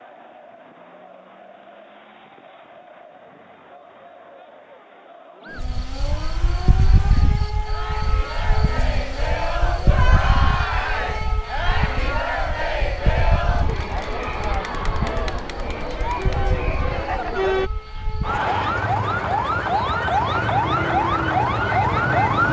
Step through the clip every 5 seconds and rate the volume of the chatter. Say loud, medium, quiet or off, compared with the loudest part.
quiet, medium, loud, loud, off.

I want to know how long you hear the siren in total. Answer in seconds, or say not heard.
17 s.